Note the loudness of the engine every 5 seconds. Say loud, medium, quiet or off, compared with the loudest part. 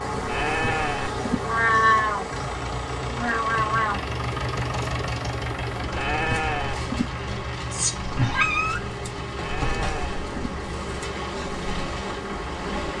loud, loud, medium.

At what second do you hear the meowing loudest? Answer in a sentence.
The loudest moment of the meowing is at 2 seconds.